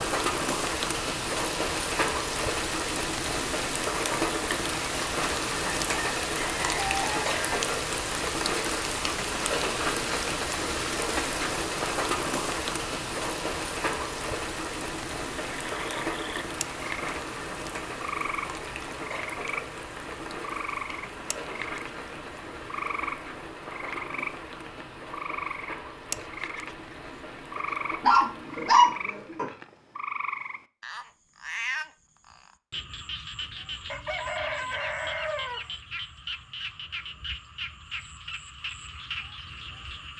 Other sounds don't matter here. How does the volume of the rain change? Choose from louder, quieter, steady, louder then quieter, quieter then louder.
quieter.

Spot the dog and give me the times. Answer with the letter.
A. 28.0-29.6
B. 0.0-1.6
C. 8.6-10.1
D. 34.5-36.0
A.